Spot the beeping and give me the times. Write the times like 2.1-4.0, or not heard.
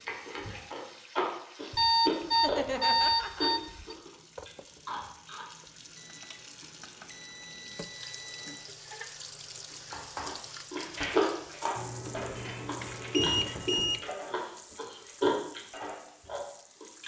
1.7-4.0, 6.0-8.7, 11.8-14.0.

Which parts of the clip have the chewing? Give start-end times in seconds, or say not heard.
0.1-5.5, 9.9-17.0.